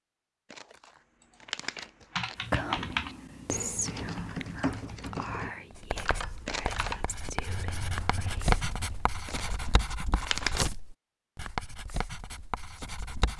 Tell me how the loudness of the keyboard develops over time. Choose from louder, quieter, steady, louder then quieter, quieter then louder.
quieter.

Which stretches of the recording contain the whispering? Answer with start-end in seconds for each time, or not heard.
2.4-8.8.